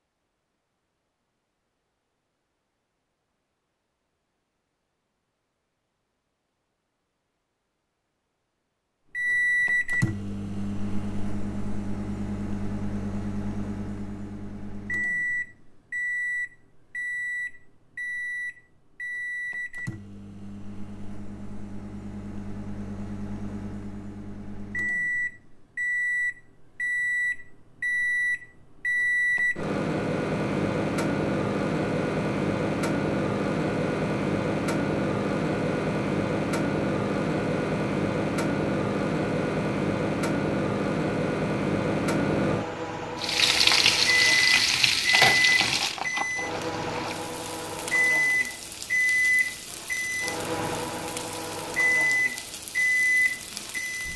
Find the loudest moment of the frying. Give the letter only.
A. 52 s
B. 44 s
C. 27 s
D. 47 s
B.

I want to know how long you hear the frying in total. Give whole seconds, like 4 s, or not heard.
11 s.